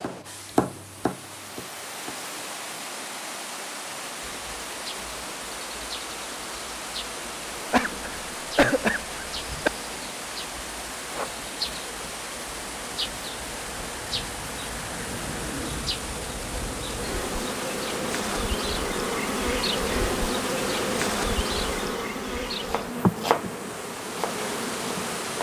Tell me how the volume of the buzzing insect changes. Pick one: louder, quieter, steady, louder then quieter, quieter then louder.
louder.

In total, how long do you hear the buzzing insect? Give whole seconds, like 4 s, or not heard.
21 s.